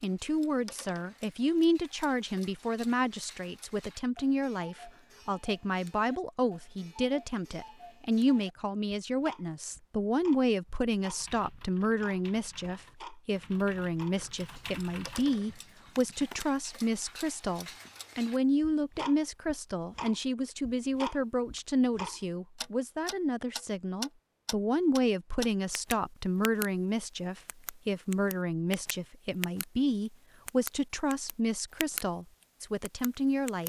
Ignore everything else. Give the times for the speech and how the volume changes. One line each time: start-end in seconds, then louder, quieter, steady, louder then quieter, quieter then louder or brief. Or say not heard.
0.0-33.6 steady.